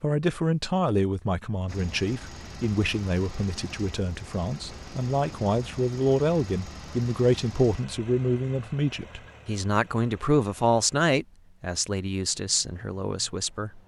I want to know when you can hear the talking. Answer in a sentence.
The talking can be heard from 0.0 to 13.8 s.